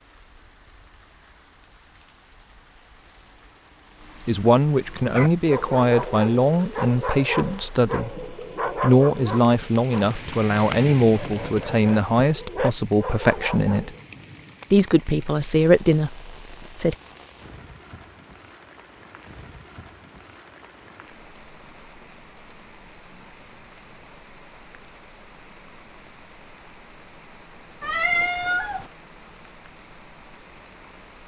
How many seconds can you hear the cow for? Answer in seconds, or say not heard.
not heard.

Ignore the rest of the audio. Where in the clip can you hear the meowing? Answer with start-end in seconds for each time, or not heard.
27.8-28.9.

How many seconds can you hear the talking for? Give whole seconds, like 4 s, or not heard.
12 s.